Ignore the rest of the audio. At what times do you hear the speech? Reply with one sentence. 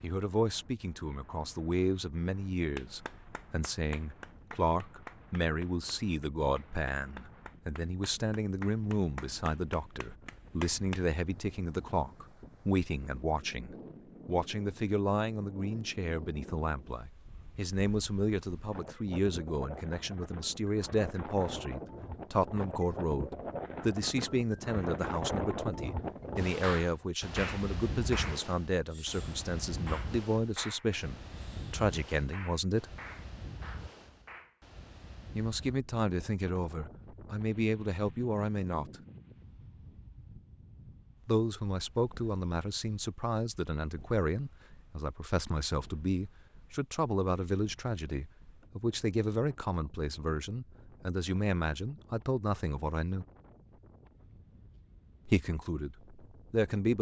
The speech can be heard from 0.0 to 32.9 s, from 35.4 to 38.9 s, from 41.2 to 53.2 s and from 55.2 to 56.9 s.